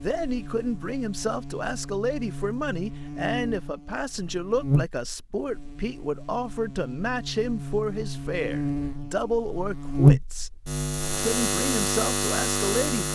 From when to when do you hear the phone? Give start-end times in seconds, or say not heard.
not heard.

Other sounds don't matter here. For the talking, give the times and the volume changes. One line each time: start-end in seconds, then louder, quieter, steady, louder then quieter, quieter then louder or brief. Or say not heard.
0.0-10.5 steady
11.2-13.1 brief.